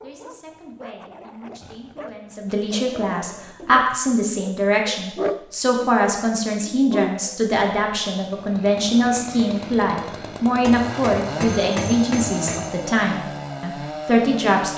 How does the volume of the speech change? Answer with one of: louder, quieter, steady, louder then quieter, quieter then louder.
louder.